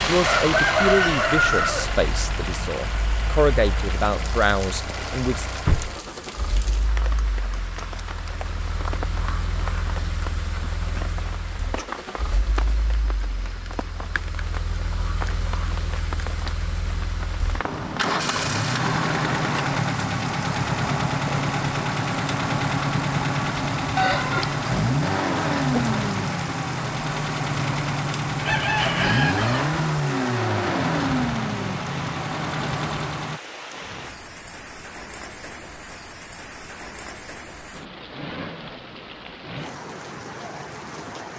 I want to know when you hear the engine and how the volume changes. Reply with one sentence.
You can hear the engine from 0.0 to 33.4 s, getting quieter then louder.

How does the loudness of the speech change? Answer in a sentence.
The volume of the speech goes down, then up.